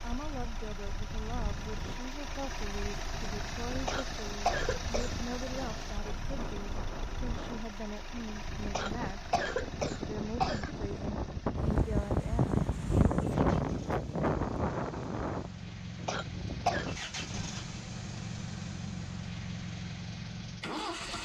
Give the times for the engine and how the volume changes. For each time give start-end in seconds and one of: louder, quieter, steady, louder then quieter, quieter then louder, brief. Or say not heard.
0.0-21.1 quieter then louder.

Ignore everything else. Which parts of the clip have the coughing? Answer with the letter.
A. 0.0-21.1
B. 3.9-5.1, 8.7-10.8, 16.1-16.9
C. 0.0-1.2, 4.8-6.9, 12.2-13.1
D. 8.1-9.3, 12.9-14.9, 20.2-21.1
B.